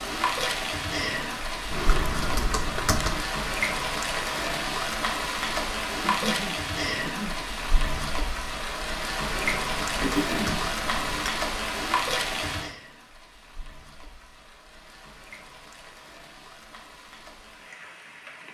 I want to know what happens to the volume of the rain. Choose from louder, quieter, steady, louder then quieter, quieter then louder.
quieter.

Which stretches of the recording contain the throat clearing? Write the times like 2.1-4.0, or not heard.
6.0-7.5, 10.0-10.7.